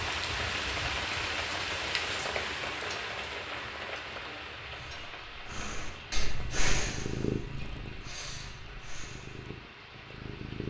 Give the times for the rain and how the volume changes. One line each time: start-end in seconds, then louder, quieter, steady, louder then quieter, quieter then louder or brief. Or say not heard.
0.0-10.6 quieter.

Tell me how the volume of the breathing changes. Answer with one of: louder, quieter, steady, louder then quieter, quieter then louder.
louder then quieter.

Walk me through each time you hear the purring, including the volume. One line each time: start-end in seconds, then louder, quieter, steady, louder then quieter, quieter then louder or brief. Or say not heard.
5.5-10.6 louder then quieter.